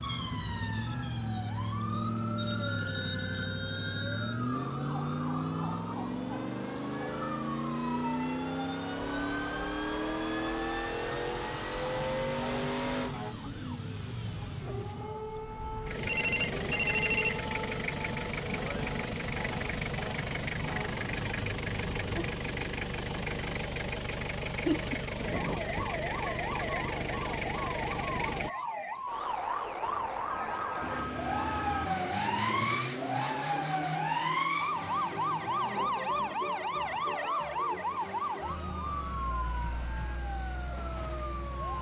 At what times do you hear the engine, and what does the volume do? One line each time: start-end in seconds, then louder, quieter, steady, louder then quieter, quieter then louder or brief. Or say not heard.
0.0-28.5 steady
30.8-41.7 quieter.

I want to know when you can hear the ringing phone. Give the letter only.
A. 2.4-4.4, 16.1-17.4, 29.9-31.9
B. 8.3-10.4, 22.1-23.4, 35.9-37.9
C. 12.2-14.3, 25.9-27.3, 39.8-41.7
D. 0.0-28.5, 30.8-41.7
A.